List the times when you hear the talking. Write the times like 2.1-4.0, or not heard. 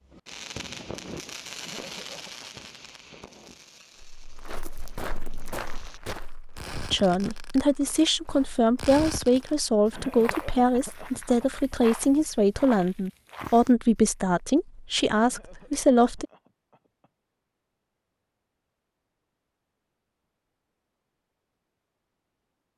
6.9-16.2.